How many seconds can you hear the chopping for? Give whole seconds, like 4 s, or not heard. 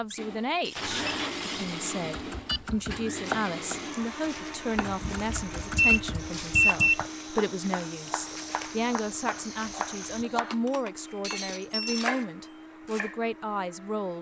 11 s.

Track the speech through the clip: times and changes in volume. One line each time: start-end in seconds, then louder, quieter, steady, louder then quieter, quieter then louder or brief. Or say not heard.
0.0-14.1 steady.